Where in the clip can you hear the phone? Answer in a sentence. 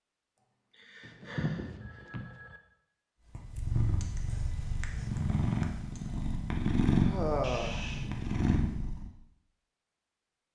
The phone can be heard from 1.0 to 2.6 s and from 7.4 to 8.1 s.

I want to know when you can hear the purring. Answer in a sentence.
The purring can be heard from 3.4 to 9.1 s.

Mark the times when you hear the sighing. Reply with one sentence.
You can hear the sighing from 0.8 to 2.0 s and from 7.0 to 8.2 s.